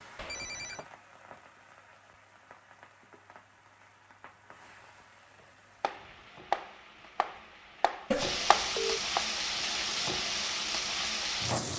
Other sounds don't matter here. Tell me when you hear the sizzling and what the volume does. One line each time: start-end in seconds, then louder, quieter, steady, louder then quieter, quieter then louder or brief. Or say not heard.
0.0-11.7 louder.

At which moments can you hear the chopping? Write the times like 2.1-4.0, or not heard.
5.8-9.2.